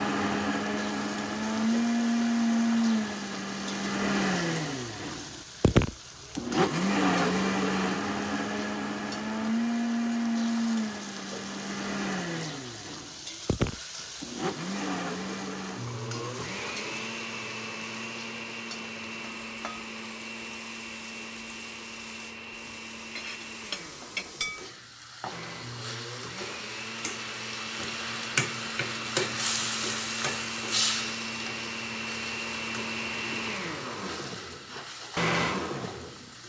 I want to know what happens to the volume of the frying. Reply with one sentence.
The loudness of the frying goes up.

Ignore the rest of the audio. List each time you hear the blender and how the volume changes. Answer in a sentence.
The blender can be heard from 0.0 to 36.4 s, getting quieter then louder.